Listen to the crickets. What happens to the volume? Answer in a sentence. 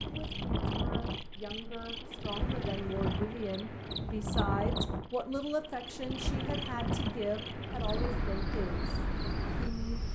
The volume of the crickets goes up.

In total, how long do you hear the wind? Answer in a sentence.
The wind can be heard for 10 seconds in total.